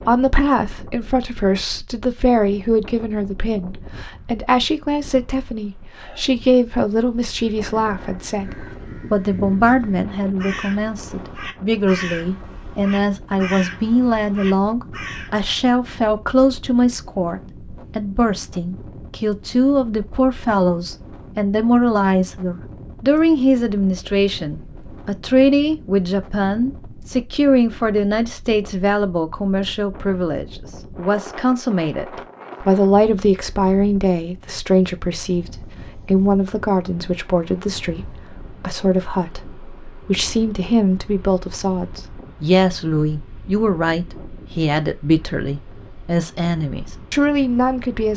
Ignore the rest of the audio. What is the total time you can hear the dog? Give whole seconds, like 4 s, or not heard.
not heard.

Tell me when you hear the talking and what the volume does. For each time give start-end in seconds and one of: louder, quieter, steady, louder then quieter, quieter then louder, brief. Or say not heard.
0.0-48.1 steady.